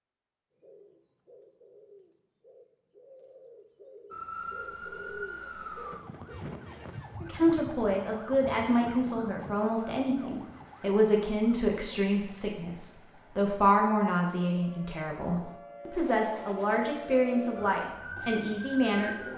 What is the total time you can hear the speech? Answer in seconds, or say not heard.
12 s.